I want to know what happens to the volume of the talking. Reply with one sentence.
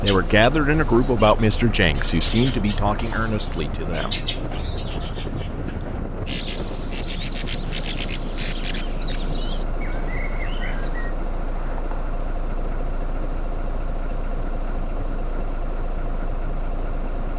The volume of the talking goes down.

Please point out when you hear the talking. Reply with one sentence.
The talking can be heard from 0.0 to 4.3 s.